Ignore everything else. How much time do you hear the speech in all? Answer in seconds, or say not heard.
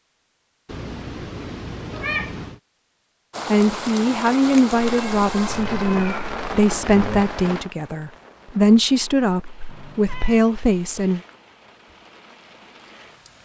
8 s.